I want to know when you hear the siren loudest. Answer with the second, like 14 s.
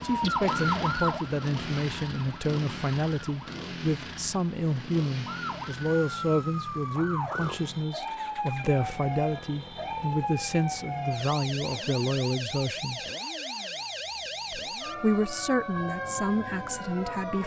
1 s.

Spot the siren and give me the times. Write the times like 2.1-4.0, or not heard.
0.0-3.5, 5.2-17.4.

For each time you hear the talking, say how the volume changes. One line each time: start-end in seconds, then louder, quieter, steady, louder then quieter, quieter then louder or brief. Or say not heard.
0.0-13.0 steady
14.5-17.4 brief.